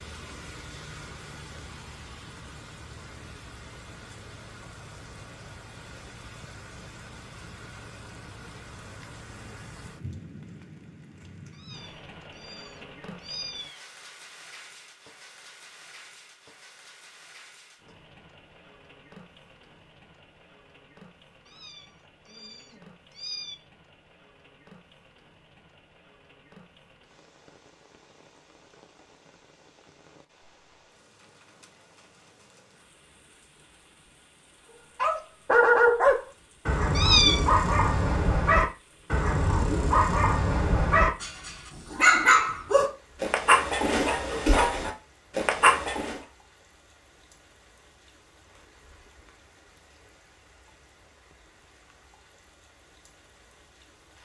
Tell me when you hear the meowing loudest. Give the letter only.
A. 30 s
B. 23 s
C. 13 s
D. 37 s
D.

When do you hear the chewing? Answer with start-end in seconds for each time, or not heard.
not heard.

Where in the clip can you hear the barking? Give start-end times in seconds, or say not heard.
35.0-46.2.